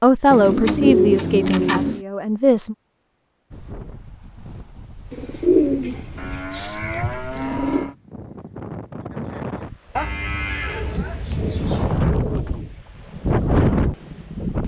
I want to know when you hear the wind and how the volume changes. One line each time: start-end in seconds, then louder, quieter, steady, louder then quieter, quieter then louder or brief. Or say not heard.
3.5-14.6 louder.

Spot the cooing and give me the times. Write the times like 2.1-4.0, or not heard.
0.3-2.0, 5.1-7.8, 10.7-12.8.